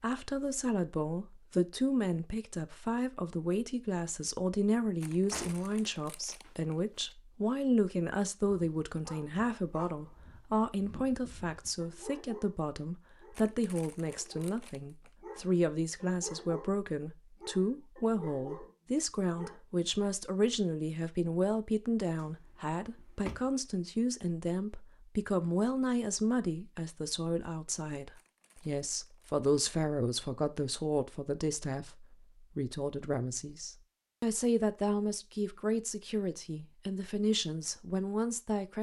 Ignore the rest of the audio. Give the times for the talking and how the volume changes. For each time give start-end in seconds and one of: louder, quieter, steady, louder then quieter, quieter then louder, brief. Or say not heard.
0.0-38.7 steady.